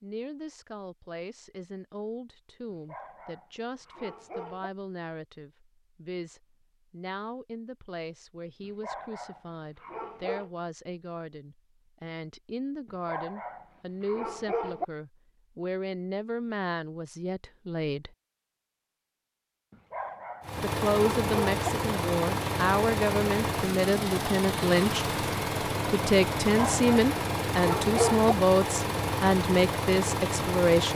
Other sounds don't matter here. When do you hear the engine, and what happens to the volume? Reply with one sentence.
You can hear the engine from 20.4 to 30.9 s, at a steady volume.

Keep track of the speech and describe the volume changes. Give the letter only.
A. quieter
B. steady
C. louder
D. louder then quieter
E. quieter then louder
C.